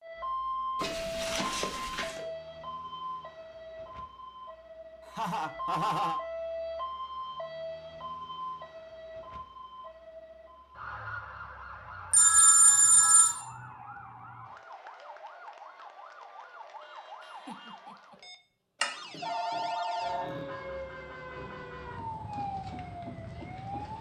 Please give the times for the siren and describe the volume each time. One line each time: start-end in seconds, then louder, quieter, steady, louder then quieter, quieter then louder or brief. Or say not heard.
0.0-23.9 quieter then louder.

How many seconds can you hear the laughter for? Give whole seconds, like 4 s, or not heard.
2 s.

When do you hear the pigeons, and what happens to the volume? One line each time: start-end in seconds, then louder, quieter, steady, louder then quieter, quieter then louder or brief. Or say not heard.
not heard.